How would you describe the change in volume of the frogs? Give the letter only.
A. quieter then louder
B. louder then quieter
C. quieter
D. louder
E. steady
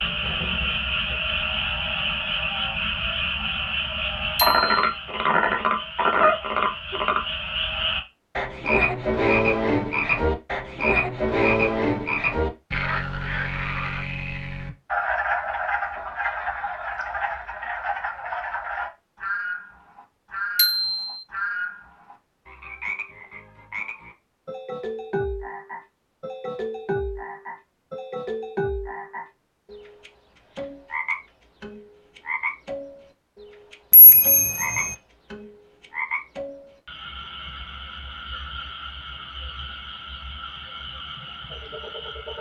C.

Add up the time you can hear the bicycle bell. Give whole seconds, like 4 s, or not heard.
2 s.